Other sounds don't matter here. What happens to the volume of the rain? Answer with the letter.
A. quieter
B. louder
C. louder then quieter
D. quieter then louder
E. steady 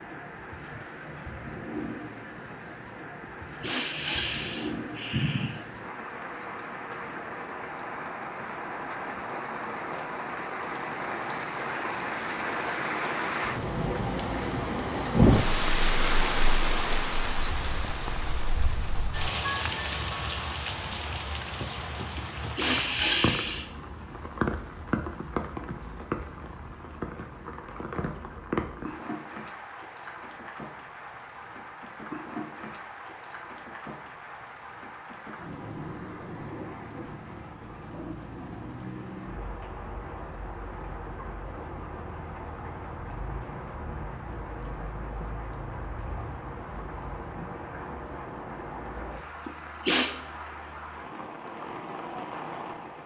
C.